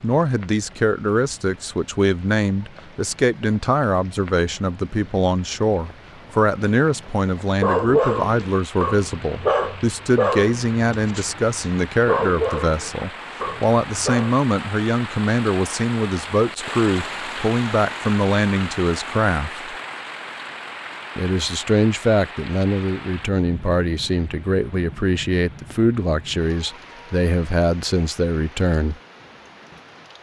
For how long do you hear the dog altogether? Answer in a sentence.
You can hear the dog for 7 seconds altogether.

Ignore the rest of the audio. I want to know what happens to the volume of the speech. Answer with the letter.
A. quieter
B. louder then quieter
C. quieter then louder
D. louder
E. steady
E.